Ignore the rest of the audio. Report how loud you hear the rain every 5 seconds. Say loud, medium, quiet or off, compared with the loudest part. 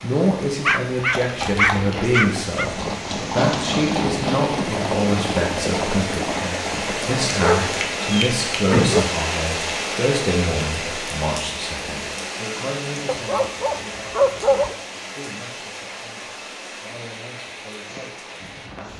medium, loud, loud, medium.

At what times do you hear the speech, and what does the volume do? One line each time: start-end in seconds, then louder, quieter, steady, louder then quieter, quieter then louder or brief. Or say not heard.
0.0-18.9 quieter.